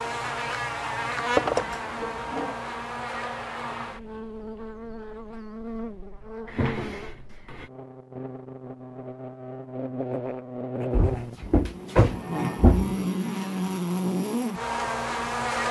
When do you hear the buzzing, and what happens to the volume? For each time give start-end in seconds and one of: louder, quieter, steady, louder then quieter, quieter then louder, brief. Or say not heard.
0.0-15.6 quieter then louder.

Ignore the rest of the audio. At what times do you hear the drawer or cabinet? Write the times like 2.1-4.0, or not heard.
1.4-2.5, 6.5-7.7, 10.9-12.9.